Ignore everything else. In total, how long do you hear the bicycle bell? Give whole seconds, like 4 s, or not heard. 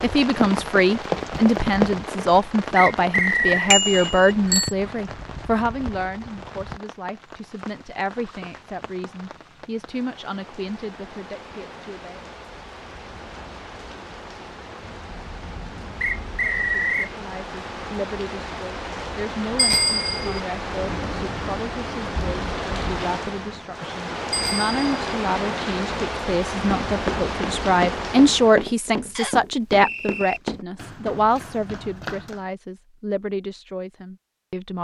3 s.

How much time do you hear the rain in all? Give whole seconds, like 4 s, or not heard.
29 s.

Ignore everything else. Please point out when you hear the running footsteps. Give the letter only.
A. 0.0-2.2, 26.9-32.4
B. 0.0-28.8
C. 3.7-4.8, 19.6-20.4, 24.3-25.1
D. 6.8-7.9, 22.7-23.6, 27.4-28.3
A.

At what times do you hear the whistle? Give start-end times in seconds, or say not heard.
2.8-3.8, 16.0-17.1, 29.1-30.4.